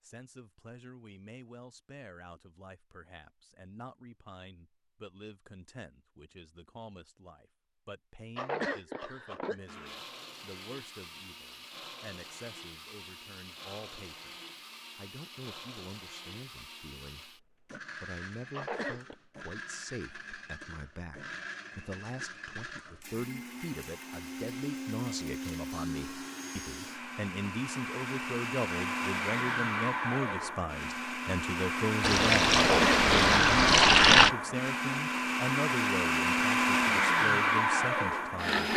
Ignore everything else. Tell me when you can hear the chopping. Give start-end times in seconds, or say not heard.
not heard.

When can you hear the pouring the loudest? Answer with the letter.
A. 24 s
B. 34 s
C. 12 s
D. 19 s
B.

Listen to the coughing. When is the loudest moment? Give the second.
33 s.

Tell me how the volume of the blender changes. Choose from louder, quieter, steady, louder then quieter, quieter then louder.
louder.